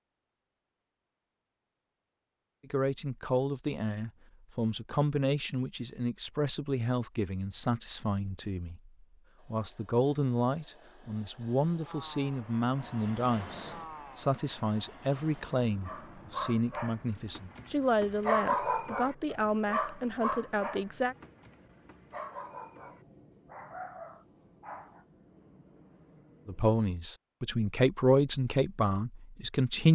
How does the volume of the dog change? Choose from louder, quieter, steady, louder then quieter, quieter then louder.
louder then quieter.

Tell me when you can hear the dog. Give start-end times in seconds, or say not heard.
15.8-25.1.